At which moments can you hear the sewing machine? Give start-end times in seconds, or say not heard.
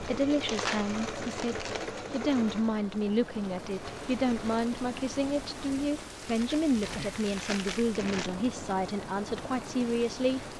0.0-4.6.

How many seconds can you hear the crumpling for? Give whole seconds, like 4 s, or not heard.
4 s.